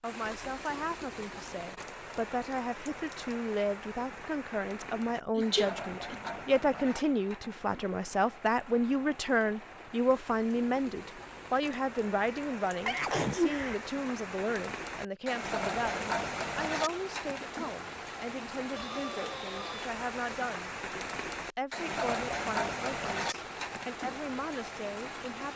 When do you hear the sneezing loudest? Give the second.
13 s.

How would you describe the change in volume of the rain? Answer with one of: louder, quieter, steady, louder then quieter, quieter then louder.
louder.